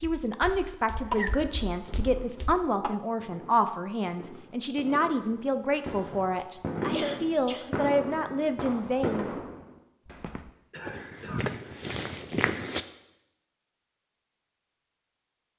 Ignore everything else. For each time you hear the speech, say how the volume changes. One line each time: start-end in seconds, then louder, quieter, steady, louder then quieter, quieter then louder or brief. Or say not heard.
0.0-9.2 steady.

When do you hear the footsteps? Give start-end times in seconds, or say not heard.
0.0-2.6, 10.1-12.8.